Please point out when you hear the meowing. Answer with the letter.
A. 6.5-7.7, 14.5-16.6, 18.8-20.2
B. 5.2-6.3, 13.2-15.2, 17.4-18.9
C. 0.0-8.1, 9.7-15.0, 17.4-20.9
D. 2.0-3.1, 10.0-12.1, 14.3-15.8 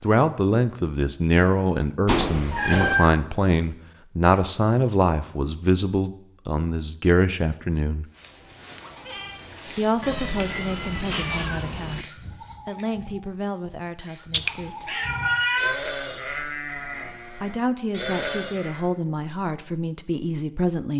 D.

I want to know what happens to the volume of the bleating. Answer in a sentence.
The volume of the bleating goes down, then up.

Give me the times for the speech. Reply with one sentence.
You can hear the speech from 0.0 to 8.1 s, from 9.7 to 15.0 s and from 17.4 to 20.9 s.